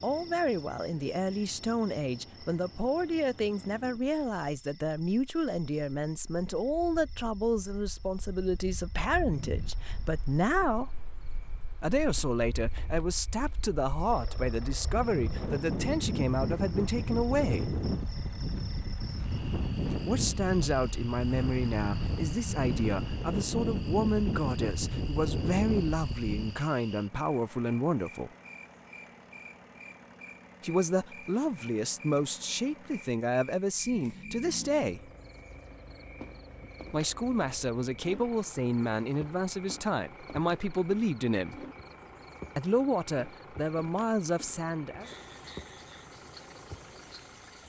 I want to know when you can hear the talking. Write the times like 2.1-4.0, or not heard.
0.0-10.9, 11.8-17.8, 20.1-28.3, 30.6-35.1, 36.9-41.6, 42.5-45.1.